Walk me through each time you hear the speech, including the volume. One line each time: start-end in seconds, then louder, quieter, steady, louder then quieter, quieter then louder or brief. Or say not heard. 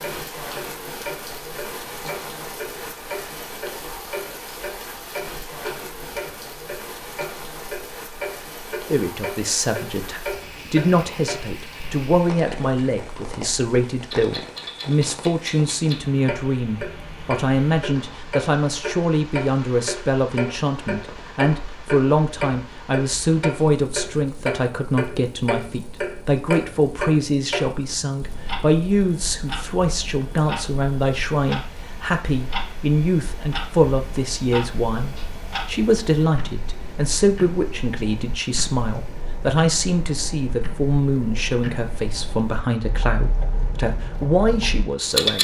8.9-45.3 steady.